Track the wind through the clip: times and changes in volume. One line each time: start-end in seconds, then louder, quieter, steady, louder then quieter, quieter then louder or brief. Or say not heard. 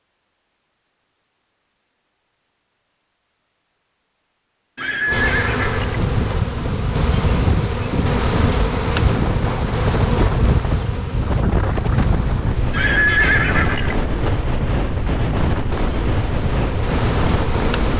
5.8-17.9 steady.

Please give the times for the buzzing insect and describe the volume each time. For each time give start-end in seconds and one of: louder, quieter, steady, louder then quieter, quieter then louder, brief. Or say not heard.
5.0-17.9 quieter then louder.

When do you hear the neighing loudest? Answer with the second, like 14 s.
13 s.